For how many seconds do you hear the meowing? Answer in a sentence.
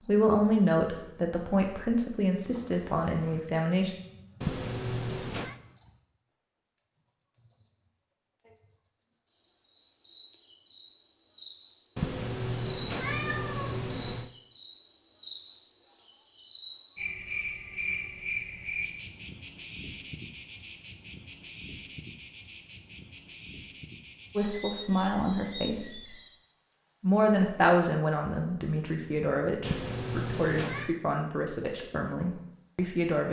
The meowing can be heard for 5 seconds in total.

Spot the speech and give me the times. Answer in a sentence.
You can hear the speech from 0.1 to 3.9 s, from 24.4 to 26.1 s and from 27.0 to 33.2 s.